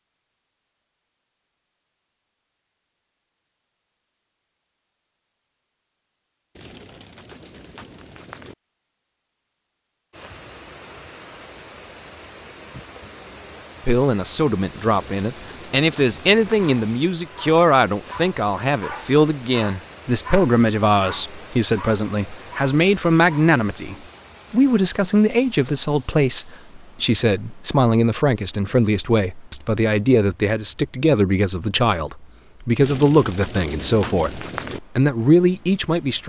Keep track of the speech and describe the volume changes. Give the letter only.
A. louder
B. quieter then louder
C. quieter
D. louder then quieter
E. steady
E.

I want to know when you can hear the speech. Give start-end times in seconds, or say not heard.
13.8-36.2.